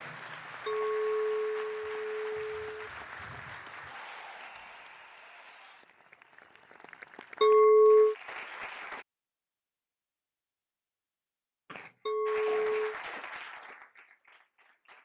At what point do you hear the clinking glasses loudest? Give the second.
8 s.